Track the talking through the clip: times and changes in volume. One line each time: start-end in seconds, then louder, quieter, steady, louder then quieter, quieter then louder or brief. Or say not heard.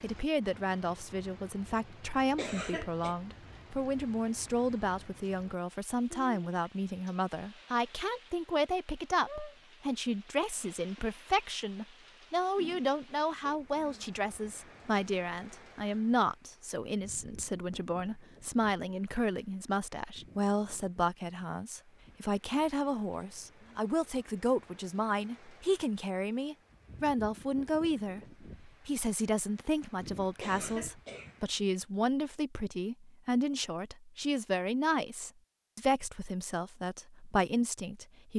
0.0-38.3 steady.